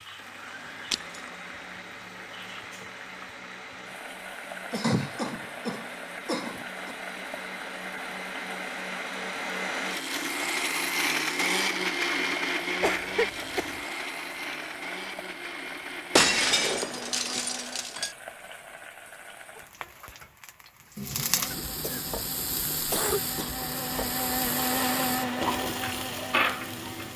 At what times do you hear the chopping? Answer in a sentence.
You can't hear the chopping here.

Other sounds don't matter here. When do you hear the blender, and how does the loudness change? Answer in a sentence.
The blender can be heard from 0.0 to 17.9 s, getting louder then quieter; and from 21.4 to 27.1 s, getting louder then quieter.